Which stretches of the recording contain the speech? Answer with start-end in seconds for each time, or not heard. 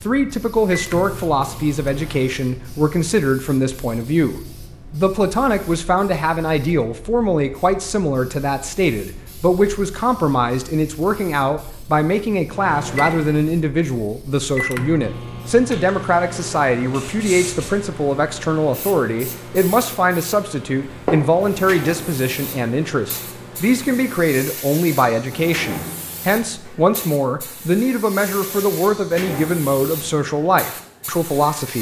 0.0-31.7.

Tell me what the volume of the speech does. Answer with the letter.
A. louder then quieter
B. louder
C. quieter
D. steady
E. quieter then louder
D.